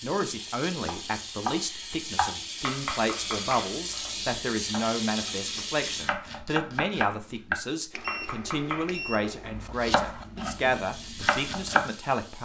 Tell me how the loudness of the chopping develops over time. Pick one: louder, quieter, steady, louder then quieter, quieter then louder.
quieter then louder.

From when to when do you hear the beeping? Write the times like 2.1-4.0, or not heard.
7.9-9.6.